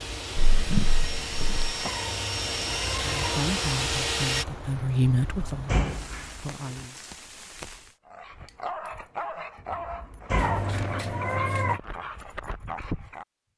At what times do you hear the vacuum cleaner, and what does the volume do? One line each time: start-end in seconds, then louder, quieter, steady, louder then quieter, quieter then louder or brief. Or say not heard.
0.0-4.5 louder.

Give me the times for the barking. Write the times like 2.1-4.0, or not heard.
8.1-13.2.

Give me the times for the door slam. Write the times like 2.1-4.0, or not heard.
0.3-1.9, 5.1-6.8, 9.7-10.7.